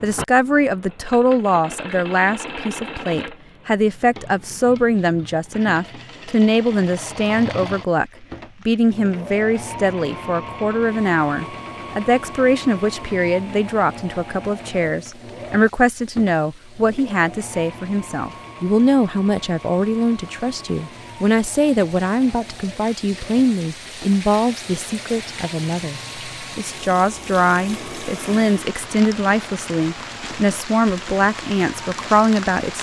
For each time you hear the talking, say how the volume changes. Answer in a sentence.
The talking can be heard from 0.0 to 32.7 s, at a steady volume.